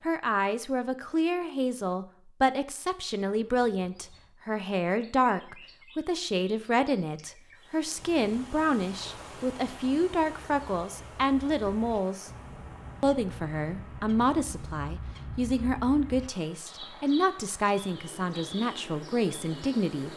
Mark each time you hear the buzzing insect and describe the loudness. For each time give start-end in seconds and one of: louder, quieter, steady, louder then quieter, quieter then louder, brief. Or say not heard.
not heard.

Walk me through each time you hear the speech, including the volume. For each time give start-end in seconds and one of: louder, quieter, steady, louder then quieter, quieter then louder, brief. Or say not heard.
0.0-12.3 steady
13.0-20.1 steady.